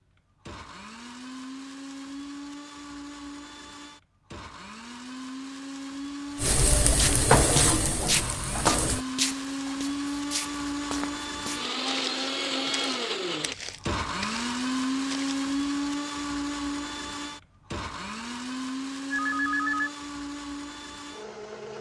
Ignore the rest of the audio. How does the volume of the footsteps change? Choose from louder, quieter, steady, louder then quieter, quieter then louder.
quieter.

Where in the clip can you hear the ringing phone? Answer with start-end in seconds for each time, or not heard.
19.1-19.9.